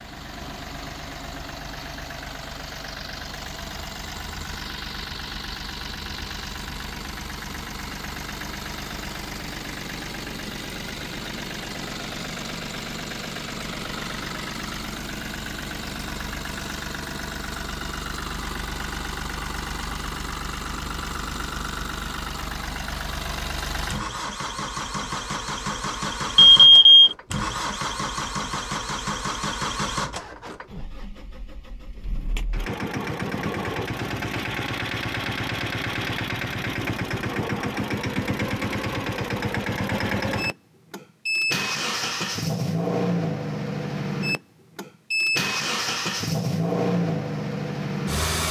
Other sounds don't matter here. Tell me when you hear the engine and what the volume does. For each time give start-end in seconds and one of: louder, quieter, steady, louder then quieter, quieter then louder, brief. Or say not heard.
0.0-48.4 louder.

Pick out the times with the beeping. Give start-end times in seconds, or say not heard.
26.4-27.1.